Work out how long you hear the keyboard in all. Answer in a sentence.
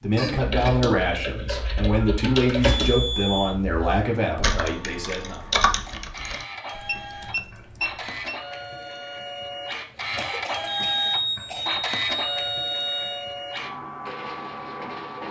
The keyboard can be heard for 8 seconds in total.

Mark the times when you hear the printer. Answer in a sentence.
You can hear the printer from 5.8 to 15.2 s.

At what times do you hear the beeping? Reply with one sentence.
The beeping can be heard from 2.5 to 3.5 s, from 6.8 to 8.3 s and from 10.7 to 13.2 s.